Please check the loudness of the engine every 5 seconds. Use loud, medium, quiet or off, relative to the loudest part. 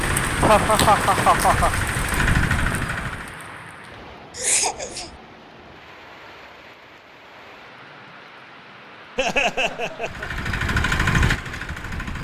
loud, off, loud.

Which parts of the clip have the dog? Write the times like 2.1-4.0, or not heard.
not heard.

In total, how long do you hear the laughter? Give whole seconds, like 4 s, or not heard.
4 s.